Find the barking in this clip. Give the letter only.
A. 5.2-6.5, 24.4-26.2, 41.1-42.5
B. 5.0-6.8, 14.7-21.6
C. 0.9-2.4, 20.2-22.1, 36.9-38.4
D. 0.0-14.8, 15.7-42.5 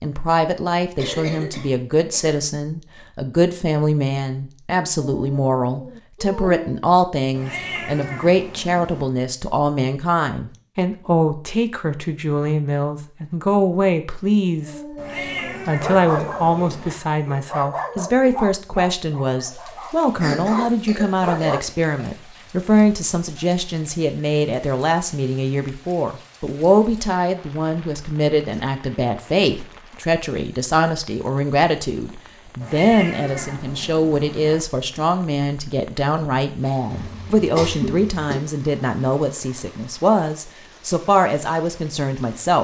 B.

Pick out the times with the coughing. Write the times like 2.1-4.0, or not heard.
0.9-2.4, 20.2-22.1, 36.9-38.4.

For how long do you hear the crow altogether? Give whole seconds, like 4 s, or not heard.
not heard.